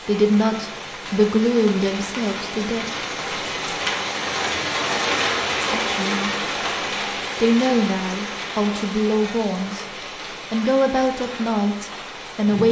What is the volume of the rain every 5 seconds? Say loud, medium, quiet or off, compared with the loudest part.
loud, loud, medium.